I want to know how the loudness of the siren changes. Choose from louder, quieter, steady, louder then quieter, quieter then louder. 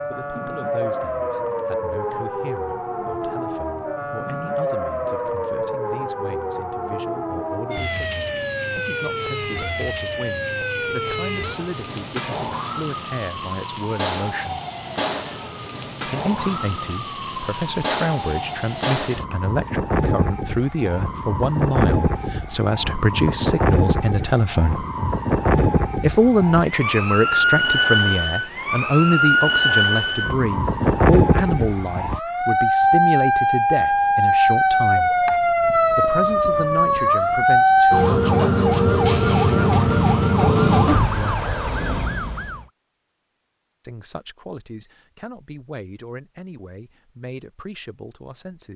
louder.